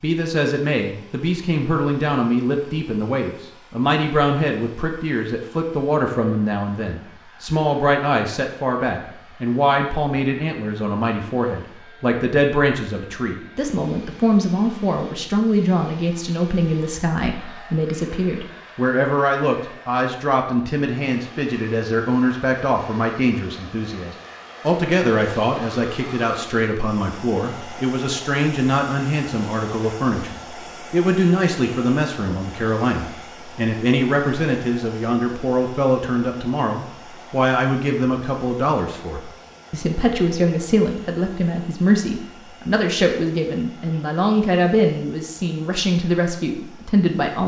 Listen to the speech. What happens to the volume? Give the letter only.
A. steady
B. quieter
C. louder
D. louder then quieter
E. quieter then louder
A.